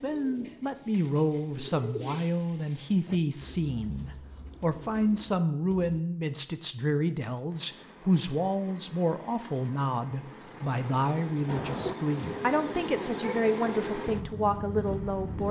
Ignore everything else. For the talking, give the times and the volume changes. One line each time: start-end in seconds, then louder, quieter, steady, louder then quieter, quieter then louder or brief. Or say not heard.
0.0-15.4 steady.